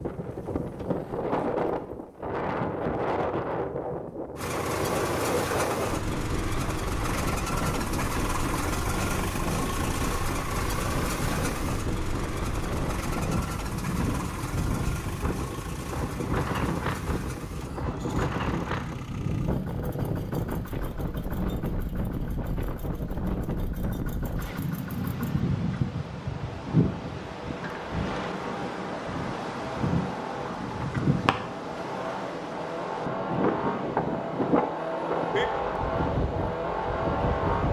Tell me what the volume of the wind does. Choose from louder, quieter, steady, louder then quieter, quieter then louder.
steady.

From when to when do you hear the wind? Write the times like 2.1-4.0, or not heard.
0.0-37.6.